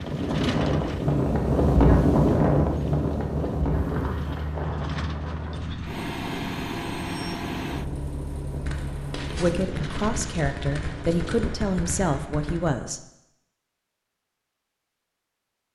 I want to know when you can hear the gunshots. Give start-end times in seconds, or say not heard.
8.6-12.8.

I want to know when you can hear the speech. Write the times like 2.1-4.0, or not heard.
9.3-13.0.